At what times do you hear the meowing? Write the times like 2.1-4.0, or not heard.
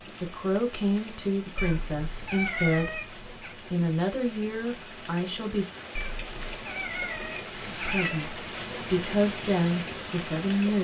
1.6-3.5, 6.0-8.3.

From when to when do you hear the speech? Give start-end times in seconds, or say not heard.
0.2-5.7, 7.7-10.8.